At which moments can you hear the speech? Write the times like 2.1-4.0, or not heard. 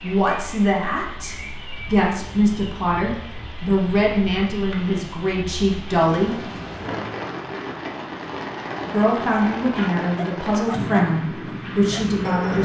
0.0-6.5, 8.8-12.6.